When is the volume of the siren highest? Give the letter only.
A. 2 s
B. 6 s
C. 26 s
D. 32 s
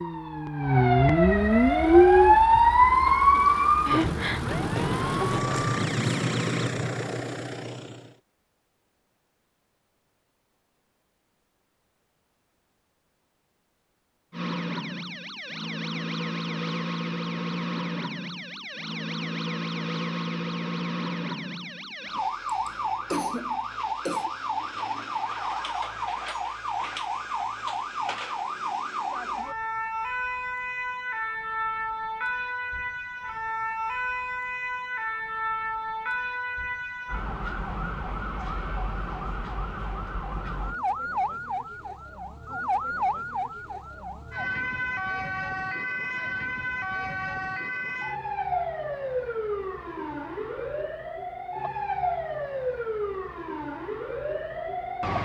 A.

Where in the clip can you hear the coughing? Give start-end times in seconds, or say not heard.
22.4-24.3.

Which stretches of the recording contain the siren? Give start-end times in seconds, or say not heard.
0.0-6.8, 14.3-55.1.